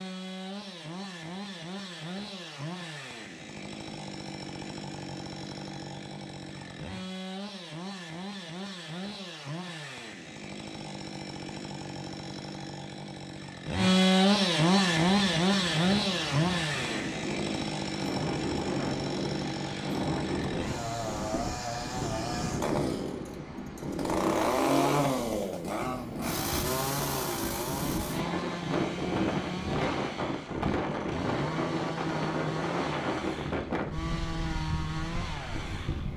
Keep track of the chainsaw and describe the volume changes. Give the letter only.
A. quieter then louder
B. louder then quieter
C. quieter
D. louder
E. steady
B.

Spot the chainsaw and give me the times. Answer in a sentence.
You can hear the chainsaw from 0.0 to 36.1 s.